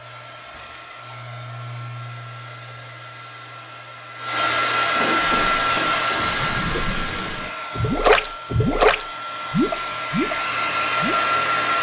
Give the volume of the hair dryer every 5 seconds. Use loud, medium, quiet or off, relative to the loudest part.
medium, loud, loud.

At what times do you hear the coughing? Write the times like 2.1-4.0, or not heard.
5.0-6.3.